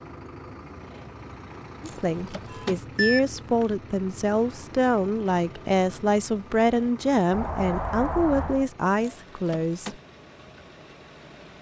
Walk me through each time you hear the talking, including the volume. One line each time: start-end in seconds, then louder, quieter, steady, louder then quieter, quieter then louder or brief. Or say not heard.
1.8-9.9 steady.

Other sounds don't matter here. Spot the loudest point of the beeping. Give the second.
3 s.